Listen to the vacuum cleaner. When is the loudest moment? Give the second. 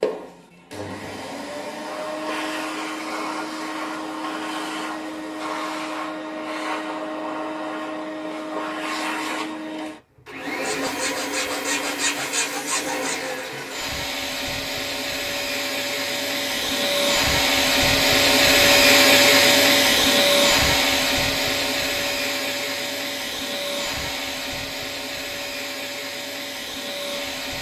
19 s.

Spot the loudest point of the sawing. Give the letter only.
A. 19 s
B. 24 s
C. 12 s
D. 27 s
C.